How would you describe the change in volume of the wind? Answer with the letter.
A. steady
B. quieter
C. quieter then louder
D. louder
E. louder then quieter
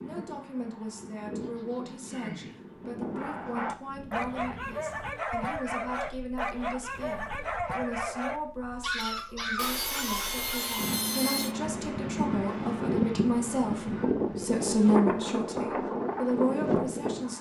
C.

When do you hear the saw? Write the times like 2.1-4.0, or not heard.
1.4-2.6, 9.6-11.6.